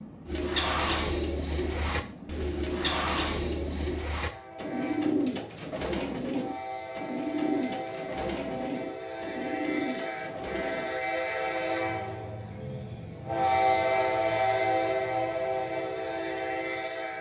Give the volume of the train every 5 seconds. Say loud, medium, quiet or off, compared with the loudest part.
quiet, medium, loud, loud.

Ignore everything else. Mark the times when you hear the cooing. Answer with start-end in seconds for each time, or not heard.
0.2-10.9.